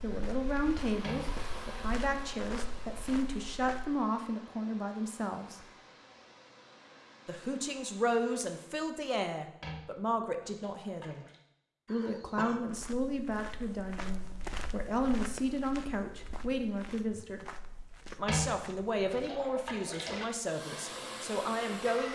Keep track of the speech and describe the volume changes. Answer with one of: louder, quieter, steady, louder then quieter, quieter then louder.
steady.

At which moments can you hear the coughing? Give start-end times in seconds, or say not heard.
11.8-12.7.